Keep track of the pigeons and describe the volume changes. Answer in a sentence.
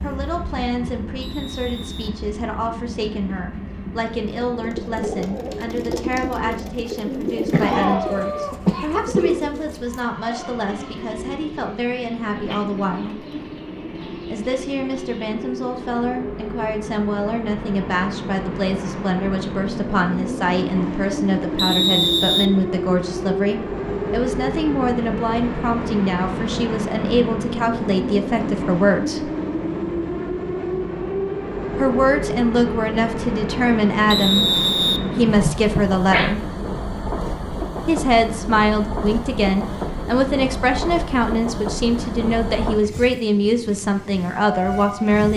The loudness of the pigeons goes down.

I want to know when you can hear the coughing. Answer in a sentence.
The coughing can be heard from 7.5 to 9.4 s and from 35.4 to 36.3 s.